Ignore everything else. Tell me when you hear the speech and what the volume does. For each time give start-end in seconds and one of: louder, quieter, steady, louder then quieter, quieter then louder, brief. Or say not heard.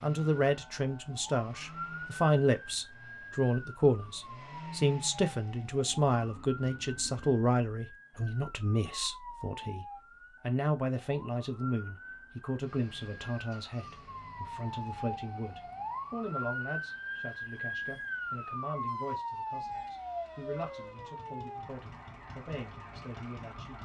0.0-23.8 quieter.